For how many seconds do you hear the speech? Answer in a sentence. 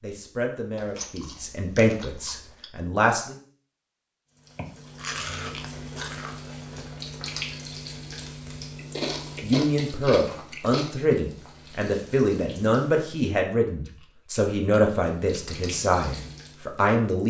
You can hear the speech for 11 seconds altogether.